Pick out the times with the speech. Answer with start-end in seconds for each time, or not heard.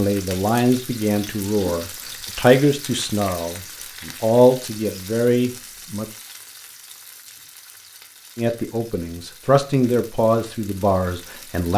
0.0-6.0, 8.3-11.7.